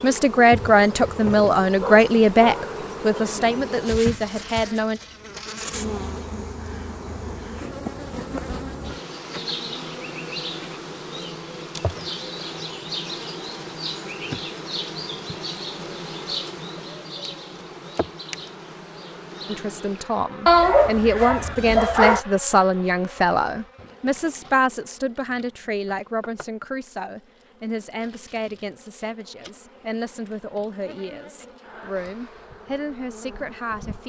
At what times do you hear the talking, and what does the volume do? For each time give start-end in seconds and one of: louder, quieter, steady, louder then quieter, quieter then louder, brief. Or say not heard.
0.0-5.0 quieter
19.4-34.0 quieter.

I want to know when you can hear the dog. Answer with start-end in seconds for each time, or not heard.
1.8-3.4, 20.4-22.2.